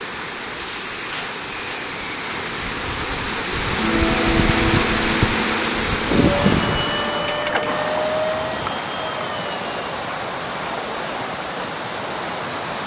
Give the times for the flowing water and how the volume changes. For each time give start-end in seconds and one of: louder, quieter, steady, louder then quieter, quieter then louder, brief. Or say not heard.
0.0-12.8 louder then quieter.